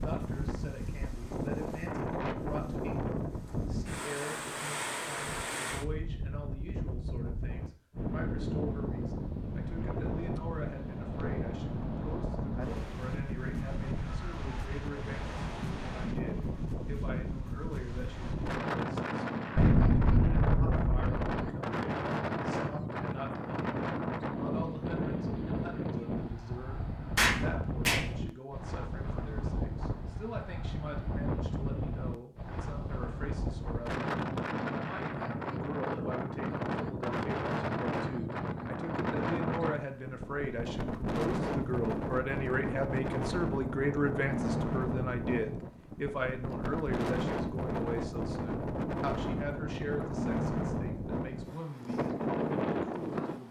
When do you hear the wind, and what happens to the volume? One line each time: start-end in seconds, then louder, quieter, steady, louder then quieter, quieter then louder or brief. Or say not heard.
0.0-53.4 steady.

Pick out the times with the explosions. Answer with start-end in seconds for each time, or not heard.
19.6-21.4, 27.1-28.1.